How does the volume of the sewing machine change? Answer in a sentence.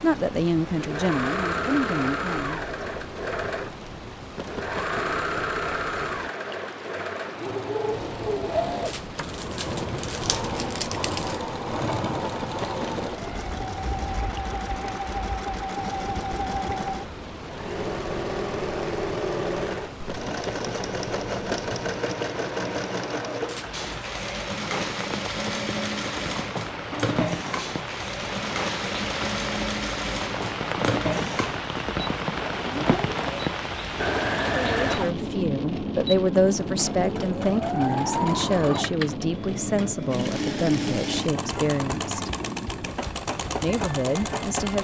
The loudness of the sewing machine stays about the same.